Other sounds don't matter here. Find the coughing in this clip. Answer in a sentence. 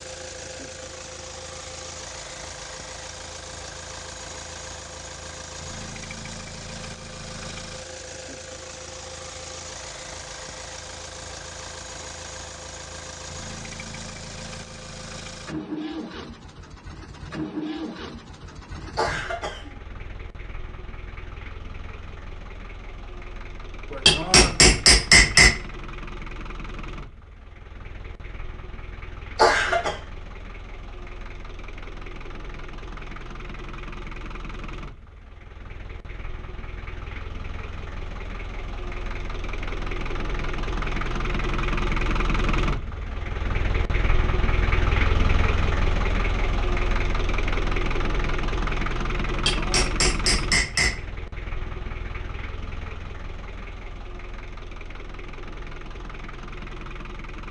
The coughing can be heard from 18.9 to 19.8 s and from 29.4 to 29.9 s.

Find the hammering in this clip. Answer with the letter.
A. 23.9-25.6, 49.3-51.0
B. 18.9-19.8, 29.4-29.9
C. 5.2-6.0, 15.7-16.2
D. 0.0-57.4
A.